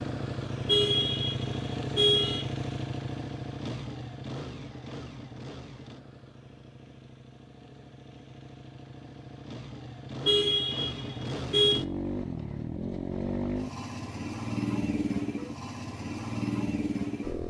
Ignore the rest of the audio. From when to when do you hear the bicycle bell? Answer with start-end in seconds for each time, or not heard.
not heard.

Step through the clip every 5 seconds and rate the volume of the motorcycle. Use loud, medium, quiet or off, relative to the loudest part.
loud, quiet, loud, loud.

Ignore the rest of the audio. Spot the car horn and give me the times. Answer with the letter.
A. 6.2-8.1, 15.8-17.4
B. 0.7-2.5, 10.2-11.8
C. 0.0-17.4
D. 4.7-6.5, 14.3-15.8
B.